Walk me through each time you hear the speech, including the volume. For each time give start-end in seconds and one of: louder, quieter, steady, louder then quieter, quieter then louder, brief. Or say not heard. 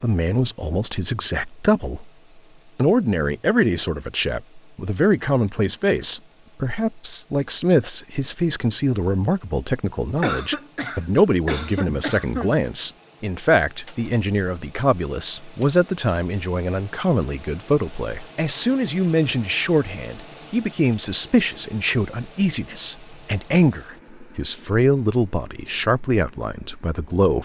0.0-2.1 brief
2.8-27.4 steady.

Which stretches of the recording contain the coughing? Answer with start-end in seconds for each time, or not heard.
10.2-12.6.